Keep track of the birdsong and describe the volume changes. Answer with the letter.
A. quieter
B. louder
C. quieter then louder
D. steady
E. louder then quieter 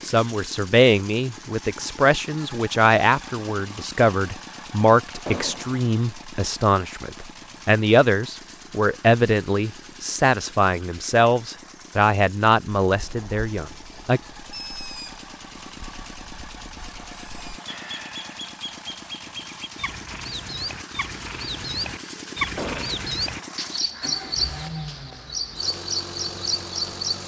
B.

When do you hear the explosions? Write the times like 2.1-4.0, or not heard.
5.2-5.8, 22.6-23.0.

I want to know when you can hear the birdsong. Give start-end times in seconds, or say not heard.
12.8-27.2.